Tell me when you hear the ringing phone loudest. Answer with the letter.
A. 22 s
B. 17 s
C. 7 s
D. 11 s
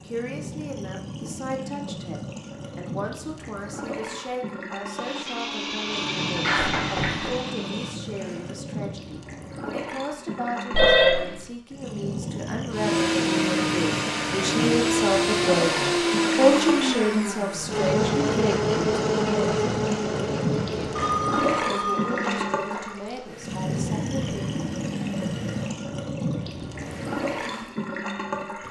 D.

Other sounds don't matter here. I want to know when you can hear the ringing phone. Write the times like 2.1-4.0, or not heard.
6.4-7.3, 10.7-11.3, 20.9-22.8.